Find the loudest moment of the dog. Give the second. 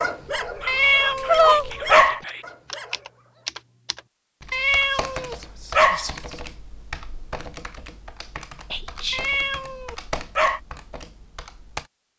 1 s.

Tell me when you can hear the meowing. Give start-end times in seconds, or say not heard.
0.7-2.2, 4.5-6.0, 9.1-10.6.